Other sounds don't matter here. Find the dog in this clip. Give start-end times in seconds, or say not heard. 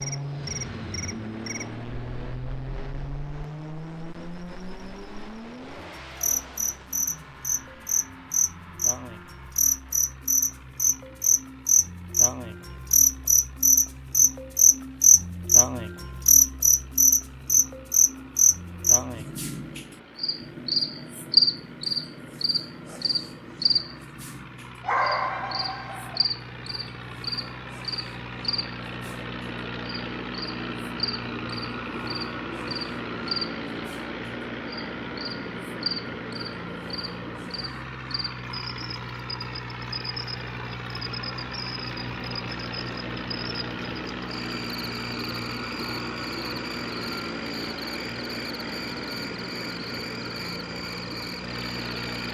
24.8-26.2.